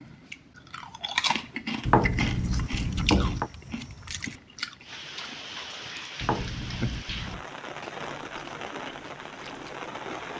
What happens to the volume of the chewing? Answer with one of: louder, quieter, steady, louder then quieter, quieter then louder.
quieter.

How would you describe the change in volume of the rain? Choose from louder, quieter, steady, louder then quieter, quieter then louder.
steady.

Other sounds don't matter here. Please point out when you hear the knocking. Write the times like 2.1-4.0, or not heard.
1.9-3.5, 6.2-7.5.